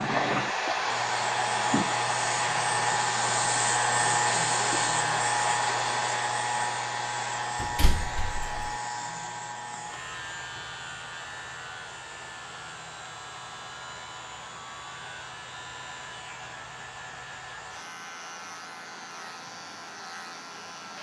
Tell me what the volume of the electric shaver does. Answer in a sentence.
The loudness of the electric shaver goes down.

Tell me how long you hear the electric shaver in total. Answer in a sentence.
You can hear the electric shaver for 21 seconds altogether.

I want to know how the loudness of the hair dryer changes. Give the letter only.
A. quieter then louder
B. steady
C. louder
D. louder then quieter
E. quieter
E.